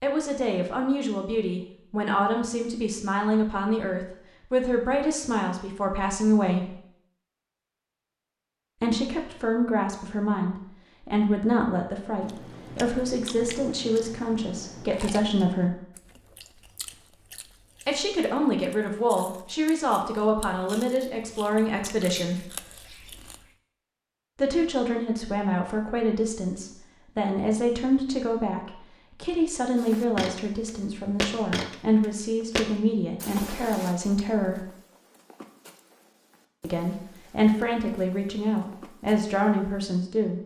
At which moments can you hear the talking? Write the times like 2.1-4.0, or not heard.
0.0-6.8, 8.8-15.8, 17.9-22.4, 24.4-34.6, 36.6-40.4.